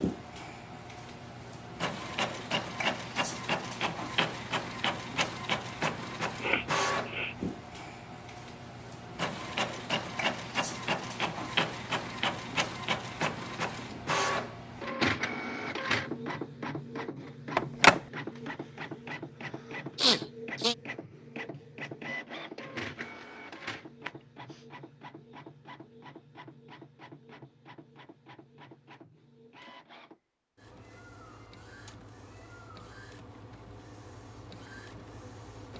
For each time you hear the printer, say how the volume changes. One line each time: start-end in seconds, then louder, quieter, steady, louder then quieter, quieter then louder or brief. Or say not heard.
0.0-35.7 quieter.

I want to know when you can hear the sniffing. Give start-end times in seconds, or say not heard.
6.4-7.3, 19.9-20.8, 24.1-24.6.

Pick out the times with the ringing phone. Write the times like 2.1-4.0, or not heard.
17.6-18.0.